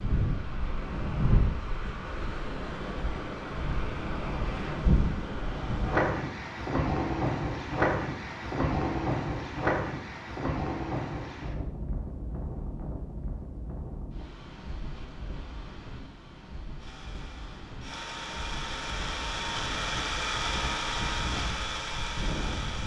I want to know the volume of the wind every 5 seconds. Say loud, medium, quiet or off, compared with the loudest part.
loud, loud, medium, quiet, medium.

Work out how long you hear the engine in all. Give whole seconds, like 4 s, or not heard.
6 s.